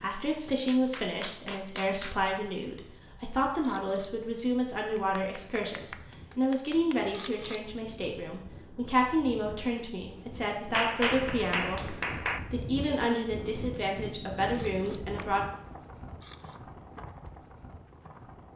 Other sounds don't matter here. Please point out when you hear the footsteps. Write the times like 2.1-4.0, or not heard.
not heard.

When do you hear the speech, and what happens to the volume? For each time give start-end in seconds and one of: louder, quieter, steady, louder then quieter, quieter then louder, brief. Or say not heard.
0.0-15.4 steady.